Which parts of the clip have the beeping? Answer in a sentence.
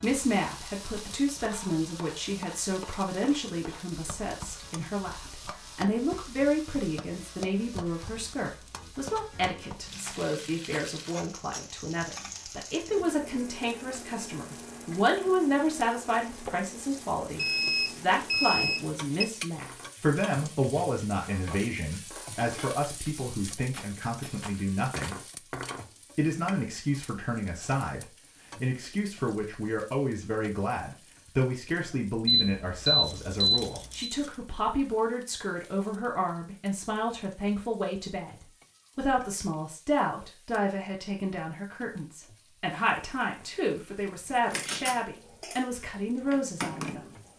You can hear the beeping from 17.4 to 19.2 s and from 32.2 to 34.1 s.